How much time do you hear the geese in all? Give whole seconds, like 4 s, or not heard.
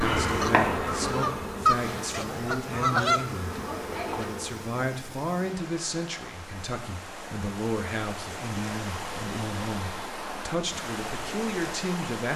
4 s.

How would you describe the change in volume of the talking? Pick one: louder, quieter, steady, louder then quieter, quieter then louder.
steady.